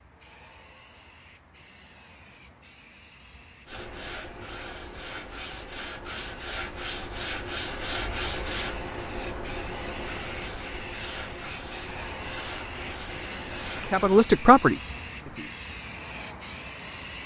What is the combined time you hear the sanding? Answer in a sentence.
The sanding can be heard for 11 seconds in total.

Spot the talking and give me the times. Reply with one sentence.
You can hear the talking from 13.8 to 15.5 s.